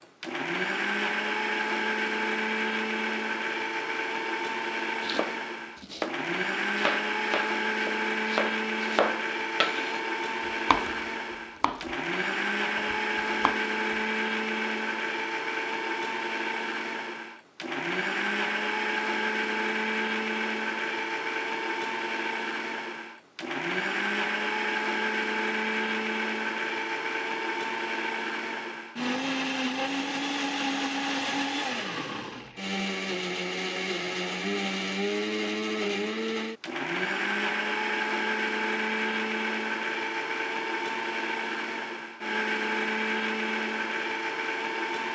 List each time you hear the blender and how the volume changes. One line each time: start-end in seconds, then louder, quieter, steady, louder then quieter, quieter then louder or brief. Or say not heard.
0.0-45.1 steady.